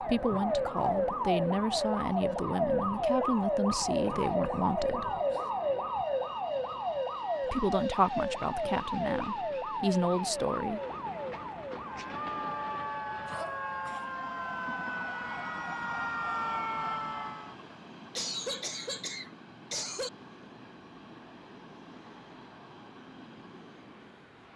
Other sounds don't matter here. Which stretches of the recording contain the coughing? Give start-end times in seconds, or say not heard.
3.7-5.5, 13.2-14.1, 18.1-20.1.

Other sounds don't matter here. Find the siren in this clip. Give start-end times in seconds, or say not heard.
0.0-17.6.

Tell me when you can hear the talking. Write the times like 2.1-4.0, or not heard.
0.0-5.1, 7.4-10.8.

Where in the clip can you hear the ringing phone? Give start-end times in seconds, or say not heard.
not heard.